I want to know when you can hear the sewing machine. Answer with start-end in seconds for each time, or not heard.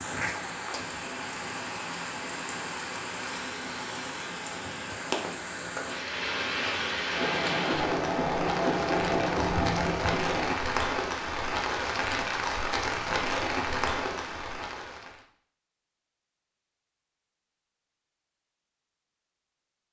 7.1-10.6.